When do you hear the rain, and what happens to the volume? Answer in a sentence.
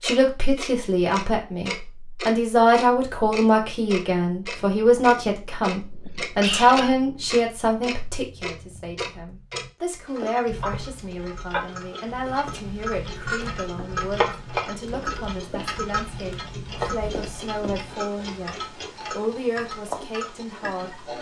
You can't hear the rain here.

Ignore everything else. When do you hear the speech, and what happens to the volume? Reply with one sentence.
The speech can be heard from 0.0 to 18.6 s, getting quieter; and briefly from 19.1 to 21.1 s.